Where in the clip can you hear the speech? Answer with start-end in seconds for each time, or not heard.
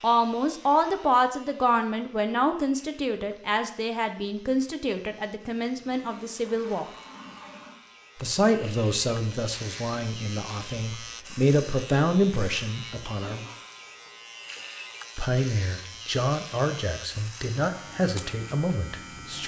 0.0-6.8, 8.2-13.4, 15.2-19.4.